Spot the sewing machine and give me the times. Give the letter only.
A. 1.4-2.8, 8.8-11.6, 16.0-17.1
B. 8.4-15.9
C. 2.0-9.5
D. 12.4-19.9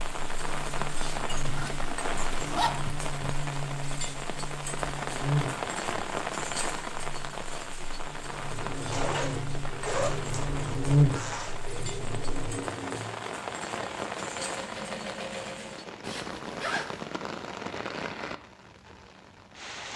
B.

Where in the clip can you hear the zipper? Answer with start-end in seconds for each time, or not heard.
1.4-2.8, 8.8-11.6, 16.0-17.1.